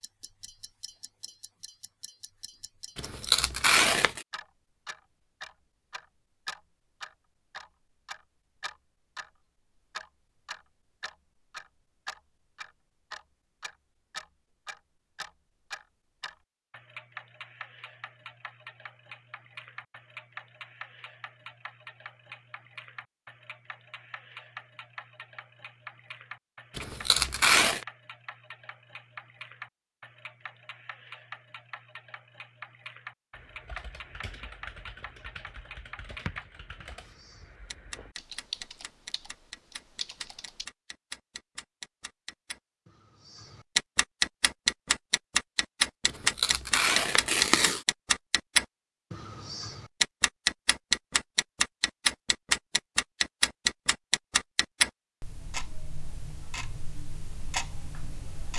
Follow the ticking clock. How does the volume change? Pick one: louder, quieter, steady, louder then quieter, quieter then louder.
louder.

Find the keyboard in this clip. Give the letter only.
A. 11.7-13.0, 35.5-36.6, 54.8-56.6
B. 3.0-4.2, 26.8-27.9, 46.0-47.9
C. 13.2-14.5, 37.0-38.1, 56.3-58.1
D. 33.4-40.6
D.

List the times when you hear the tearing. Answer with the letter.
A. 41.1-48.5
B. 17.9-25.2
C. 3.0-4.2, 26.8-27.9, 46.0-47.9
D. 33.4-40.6
C.